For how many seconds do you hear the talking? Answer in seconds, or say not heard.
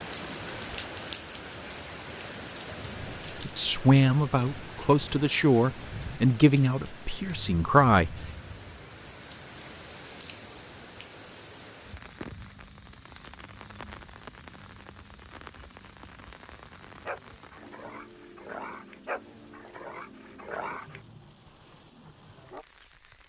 5 s.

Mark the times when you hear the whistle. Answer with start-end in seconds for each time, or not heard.
not heard.